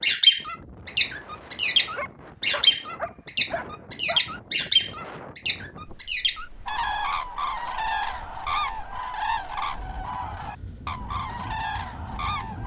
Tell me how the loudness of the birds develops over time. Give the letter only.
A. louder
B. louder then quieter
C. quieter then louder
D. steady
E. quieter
E.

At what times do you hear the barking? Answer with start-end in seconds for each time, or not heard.
1.8-4.3.